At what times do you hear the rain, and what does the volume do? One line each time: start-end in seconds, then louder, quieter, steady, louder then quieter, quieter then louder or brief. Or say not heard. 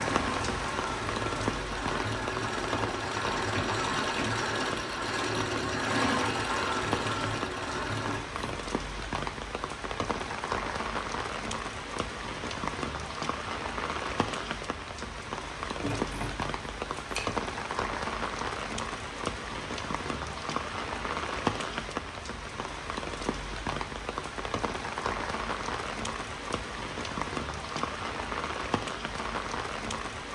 0.0-30.3 steady.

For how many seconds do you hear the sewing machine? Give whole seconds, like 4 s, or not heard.
8 s.